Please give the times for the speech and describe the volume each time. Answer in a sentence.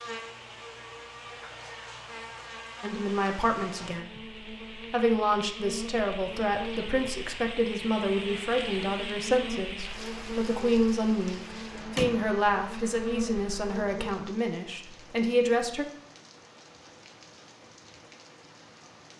The speech can be heard briefly from 2.8 to 4.2 s; and from 4.9 to 15.8 s, at a steady volume.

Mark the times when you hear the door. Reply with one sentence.
You can hear the door from 11.1 to 12.3 s.